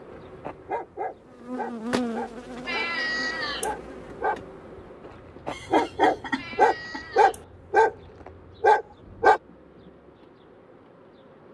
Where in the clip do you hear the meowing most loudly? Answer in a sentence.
The volume of the meowing peaks at 3 seconds.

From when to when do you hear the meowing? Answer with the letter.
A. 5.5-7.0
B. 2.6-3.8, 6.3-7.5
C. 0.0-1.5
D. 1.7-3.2
B.